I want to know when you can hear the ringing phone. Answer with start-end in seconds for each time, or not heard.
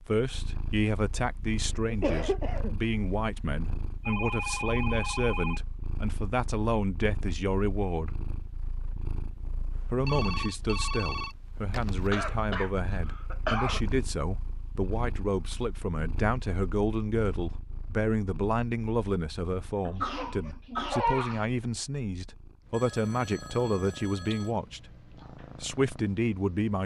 4.0-5.6, 9.7-12.1, 22.7-24.6.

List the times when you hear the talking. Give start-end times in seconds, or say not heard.
0.1-8.2, 9.9-24.9, 25.6-26.8.